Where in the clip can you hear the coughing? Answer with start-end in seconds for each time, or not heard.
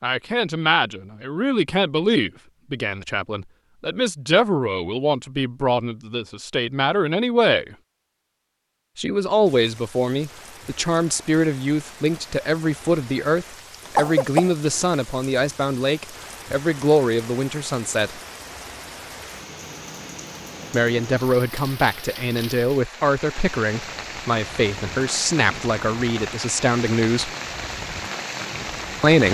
13.8-14.8.